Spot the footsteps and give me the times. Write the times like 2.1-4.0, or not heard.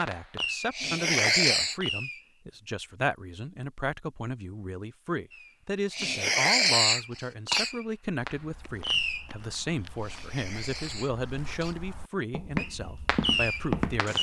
8.3-14.1.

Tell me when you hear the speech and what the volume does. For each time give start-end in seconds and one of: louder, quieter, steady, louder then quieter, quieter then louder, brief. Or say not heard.
0.0-14.1 steady.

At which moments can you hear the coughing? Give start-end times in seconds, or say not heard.
0.7-1.8, 5.9-7.7, 10.0-11.8.